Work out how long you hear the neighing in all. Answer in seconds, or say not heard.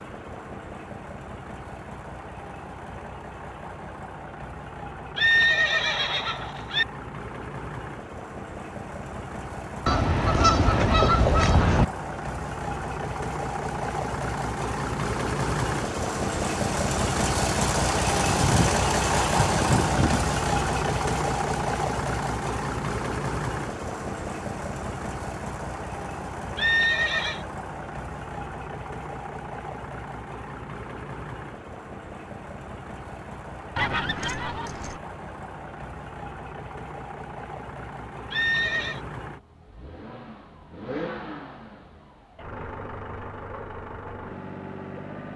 3 s.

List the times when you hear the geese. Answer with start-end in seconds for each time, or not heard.
9.8-11.8, 18.2-20.2, 33.8-35.0.